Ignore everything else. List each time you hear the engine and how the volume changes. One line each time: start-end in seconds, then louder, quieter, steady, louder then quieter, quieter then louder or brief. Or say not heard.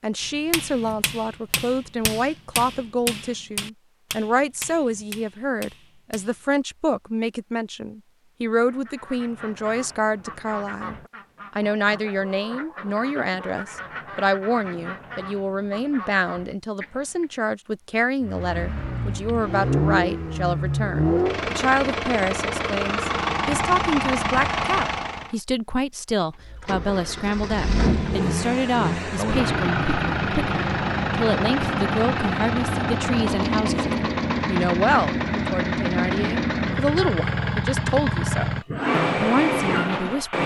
18.2-25.4 steady
26.4-40.4 steady.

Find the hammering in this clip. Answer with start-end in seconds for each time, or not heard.
0.2-6.5.